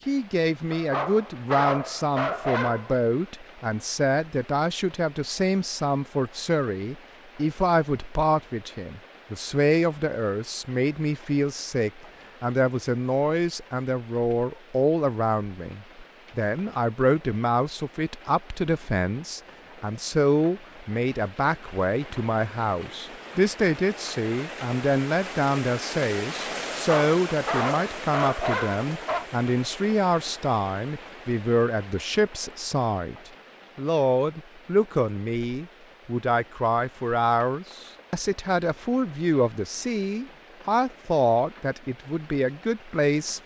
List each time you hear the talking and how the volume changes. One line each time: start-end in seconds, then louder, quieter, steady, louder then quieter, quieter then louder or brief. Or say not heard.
0.1-43.4 steady.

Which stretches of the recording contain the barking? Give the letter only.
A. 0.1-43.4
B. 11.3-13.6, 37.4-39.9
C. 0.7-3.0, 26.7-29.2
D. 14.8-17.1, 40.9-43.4
C.